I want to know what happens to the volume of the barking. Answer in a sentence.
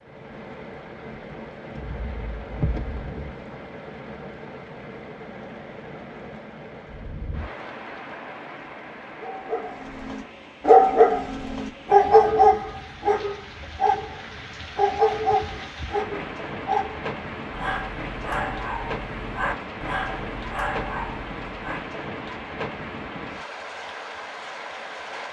The loudness of the barking goes down.